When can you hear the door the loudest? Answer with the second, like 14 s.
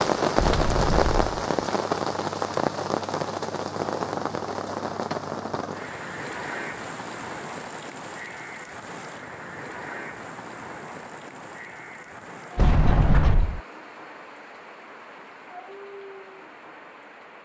13 s.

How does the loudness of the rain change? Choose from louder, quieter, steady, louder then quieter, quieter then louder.
quieter.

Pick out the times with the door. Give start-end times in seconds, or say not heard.
0.3-1.2, 12.6-13.6.